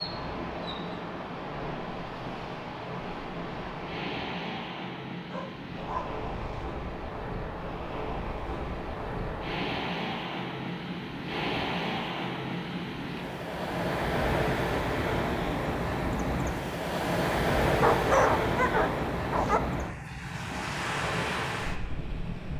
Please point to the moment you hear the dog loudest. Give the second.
18 s.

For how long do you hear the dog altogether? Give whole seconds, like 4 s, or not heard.
3 s.